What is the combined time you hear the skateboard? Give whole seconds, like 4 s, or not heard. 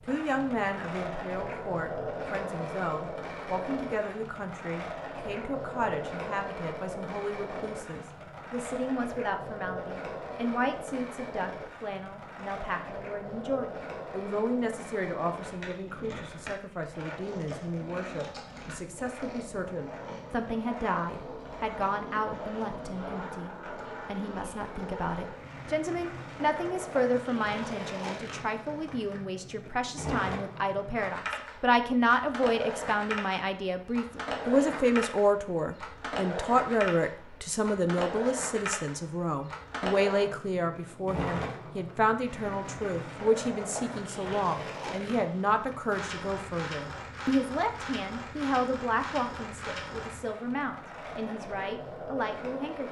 53 s.